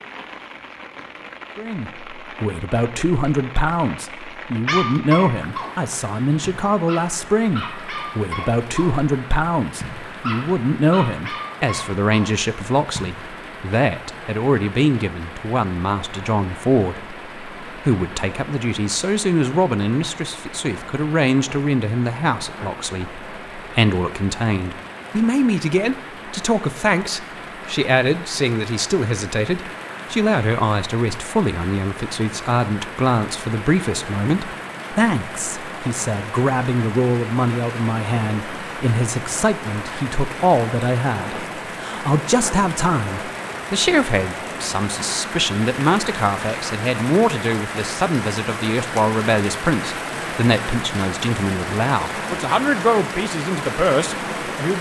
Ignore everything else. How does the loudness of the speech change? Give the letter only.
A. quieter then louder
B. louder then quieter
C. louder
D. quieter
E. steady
E.